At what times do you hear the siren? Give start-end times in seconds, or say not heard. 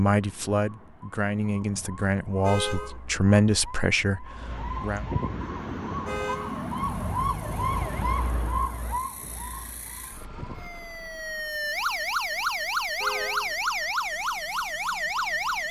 0.1-15.6.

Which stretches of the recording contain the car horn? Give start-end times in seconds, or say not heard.
2.4-3.0, 6.0-6.6, 13.0-13.6.